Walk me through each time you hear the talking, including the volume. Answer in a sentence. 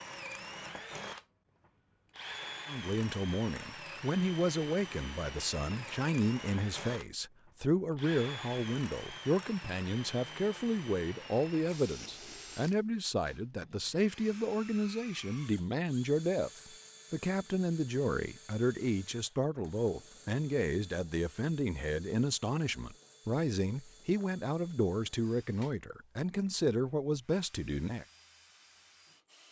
You can hear the talking from 2.6 to 28.1 s, at a steady volume.